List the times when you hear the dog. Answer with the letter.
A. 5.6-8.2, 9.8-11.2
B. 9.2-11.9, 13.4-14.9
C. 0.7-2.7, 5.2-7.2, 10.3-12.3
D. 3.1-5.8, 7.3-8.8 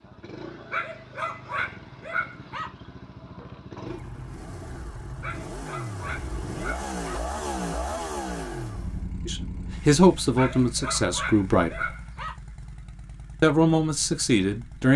C.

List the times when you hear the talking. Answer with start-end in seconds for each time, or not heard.
9.2-11.9, 13.4-14.9.